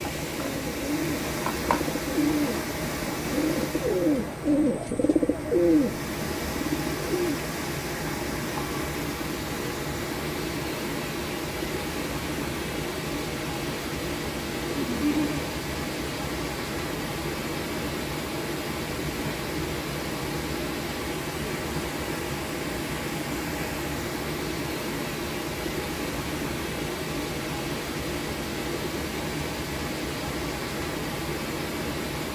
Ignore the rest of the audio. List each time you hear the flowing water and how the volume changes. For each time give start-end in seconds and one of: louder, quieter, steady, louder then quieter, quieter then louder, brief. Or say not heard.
0.0-32.2 steady.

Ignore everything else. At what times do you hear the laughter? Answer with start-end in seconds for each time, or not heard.
14.8-15.4.